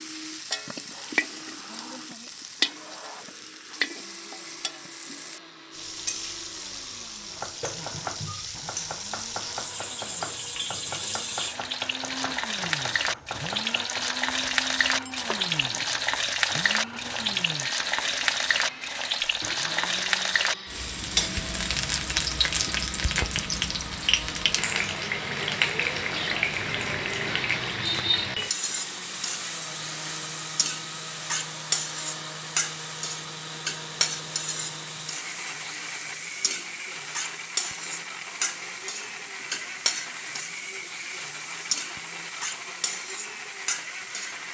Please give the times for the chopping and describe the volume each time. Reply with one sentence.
You can hear the chopping from 7.3 to 14.1 s, at a steady volume.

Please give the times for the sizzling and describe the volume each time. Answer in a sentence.
You can hear the sizzling from 0.0 to 44.4 s, getting louder then quieter.